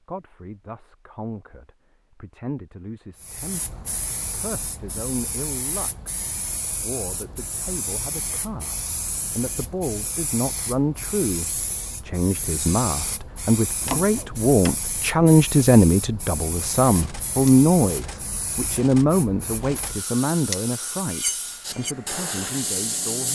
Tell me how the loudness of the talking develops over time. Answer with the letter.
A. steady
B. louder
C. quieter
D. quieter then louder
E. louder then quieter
E.